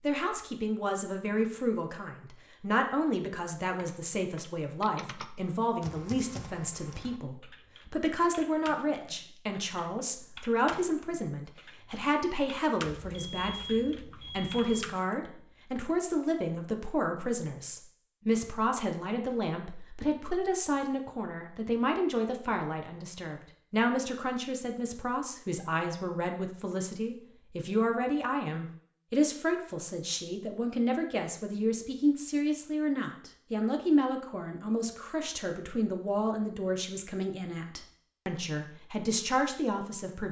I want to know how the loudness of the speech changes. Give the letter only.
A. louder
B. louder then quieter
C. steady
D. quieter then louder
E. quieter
C.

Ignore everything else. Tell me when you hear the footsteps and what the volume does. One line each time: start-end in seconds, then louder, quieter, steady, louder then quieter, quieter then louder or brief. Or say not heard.
not heard.